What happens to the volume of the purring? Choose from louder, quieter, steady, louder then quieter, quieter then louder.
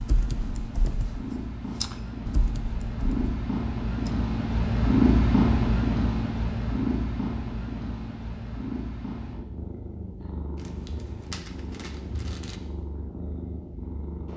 louder then quieter.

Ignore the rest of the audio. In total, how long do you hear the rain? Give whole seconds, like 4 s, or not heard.
not heard.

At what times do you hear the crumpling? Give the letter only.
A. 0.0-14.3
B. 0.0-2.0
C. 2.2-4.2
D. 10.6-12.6
D.